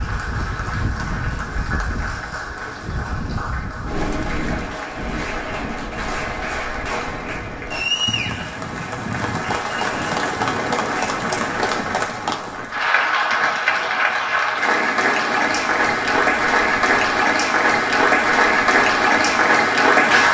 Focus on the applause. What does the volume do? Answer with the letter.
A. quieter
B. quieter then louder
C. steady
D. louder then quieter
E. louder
E.